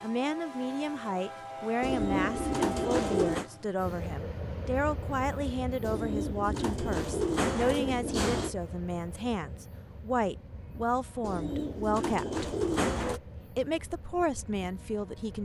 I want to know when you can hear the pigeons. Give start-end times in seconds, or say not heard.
1.8-3.5, 5.8-8.6, 11.2-13.2.